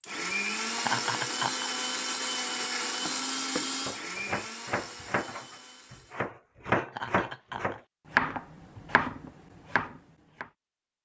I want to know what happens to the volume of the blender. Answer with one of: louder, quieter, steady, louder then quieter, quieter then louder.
quieter.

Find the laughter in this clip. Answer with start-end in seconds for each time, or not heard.
0.8-1.7, 6.8-7.8.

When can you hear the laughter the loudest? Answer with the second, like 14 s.
1 s.